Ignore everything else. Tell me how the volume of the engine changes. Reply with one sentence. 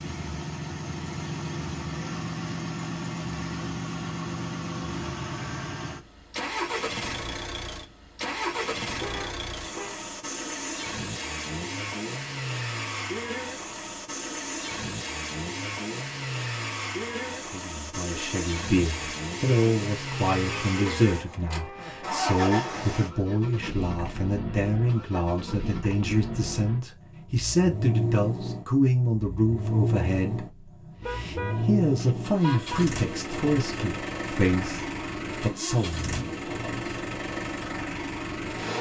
The loudness of the engine stays about the same.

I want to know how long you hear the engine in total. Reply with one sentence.
You can hear the engine for 39 seconds altogether.